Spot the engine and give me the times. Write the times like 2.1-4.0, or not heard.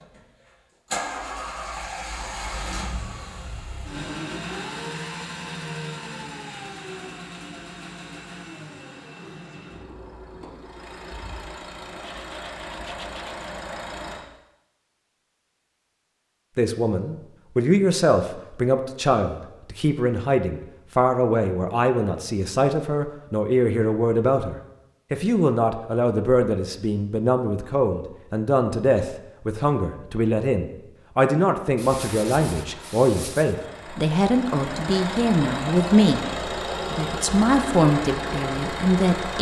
0.0-14.2, 31.9-39.3.